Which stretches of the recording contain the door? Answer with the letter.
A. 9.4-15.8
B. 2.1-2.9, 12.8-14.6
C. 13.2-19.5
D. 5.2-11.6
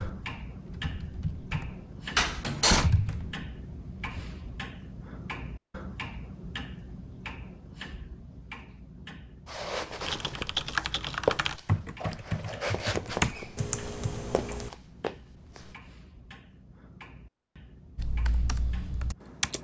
B.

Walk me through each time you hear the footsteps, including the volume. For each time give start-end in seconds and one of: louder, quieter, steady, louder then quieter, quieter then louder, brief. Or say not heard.
9.4-15.8 louder then quieter.